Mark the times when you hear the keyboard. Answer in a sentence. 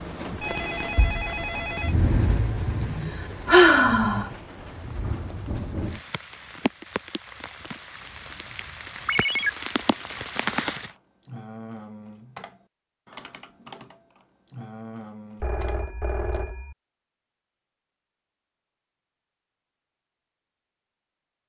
You can hear the keyboard from 9.8 to 16.6 s.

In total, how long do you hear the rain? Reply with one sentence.
The rain can be heard for 11 seconds in total.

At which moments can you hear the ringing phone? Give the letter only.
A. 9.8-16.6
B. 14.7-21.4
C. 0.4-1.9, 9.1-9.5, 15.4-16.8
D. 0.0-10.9
C.